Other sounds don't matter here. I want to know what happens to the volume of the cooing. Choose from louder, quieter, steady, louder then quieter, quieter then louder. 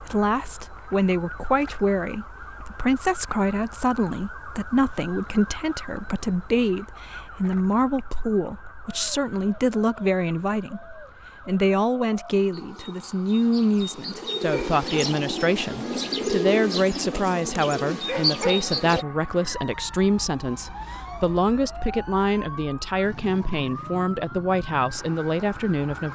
louder.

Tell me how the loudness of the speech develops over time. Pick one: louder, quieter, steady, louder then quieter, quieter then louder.
steady.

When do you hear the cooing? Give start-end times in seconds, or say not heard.
8.8-19.1.